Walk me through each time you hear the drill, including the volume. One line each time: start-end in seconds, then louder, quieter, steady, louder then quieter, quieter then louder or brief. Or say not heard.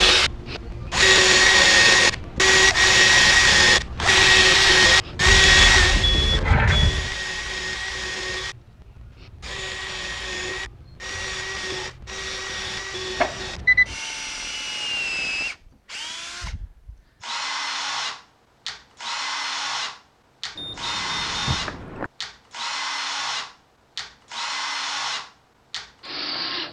0.0-26.6 quieter.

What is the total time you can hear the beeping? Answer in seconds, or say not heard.
4 s.